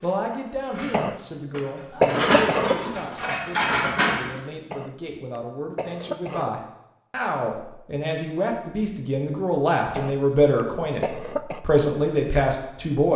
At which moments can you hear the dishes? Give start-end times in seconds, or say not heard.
0.0-4.4.